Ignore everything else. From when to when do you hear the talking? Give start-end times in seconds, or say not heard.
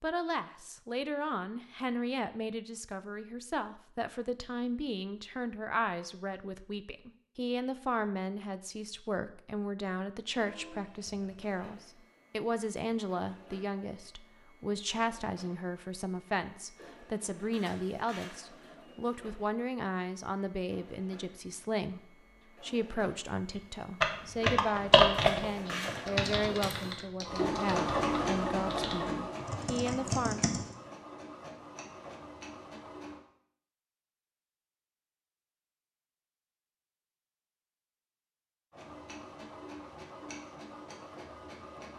0.0-30.4.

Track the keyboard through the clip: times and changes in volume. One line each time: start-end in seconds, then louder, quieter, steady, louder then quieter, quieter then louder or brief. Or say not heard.
24.0-30.8 quieter then louder.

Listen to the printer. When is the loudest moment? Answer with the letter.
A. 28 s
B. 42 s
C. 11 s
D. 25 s
A.